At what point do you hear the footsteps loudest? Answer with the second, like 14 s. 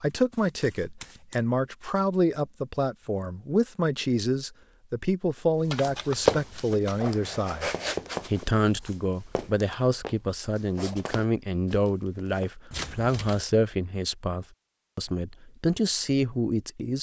6 s.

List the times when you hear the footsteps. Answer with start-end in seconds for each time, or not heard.
5.8-12.5.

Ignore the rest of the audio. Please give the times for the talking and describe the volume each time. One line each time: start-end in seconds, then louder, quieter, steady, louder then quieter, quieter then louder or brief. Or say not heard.
0.0-16.9 steady.